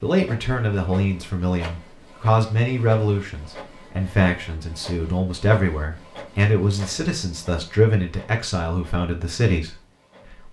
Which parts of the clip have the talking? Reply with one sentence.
You can hear the talking from 0.0 to 9.8 s.